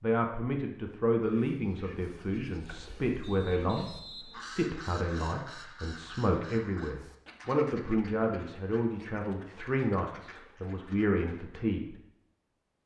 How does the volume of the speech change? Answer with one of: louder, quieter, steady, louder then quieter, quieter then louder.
steady.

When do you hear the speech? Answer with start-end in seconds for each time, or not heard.
0.0-12.0.